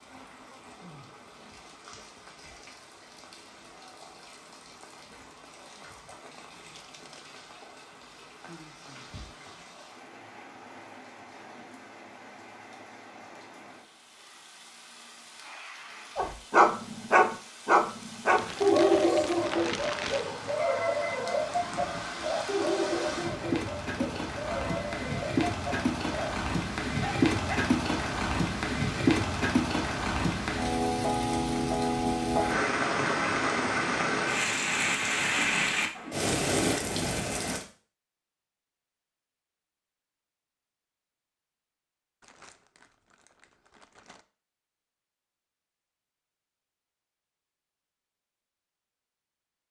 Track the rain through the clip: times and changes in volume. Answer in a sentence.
You can hear the rain from 0.0 to 37.6 s, getting louder.